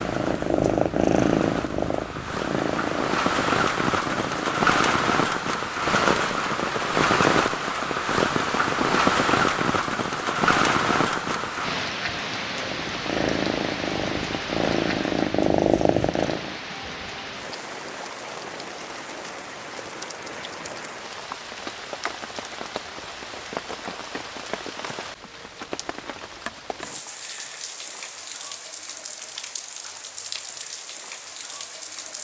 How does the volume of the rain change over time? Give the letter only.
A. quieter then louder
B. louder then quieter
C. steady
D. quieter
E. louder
D.